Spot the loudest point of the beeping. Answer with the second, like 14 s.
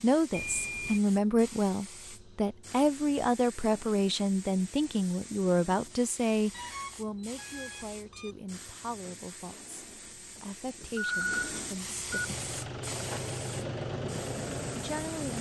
11 s.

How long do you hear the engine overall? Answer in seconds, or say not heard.
3 s.